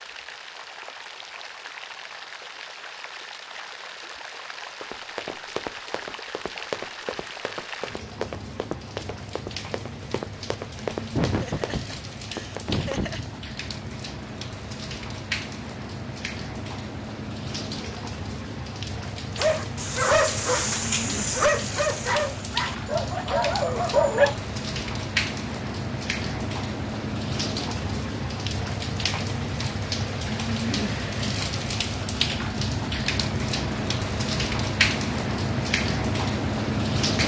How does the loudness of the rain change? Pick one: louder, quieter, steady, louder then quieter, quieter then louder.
louder.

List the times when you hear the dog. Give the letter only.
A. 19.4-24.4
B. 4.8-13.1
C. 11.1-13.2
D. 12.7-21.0
A.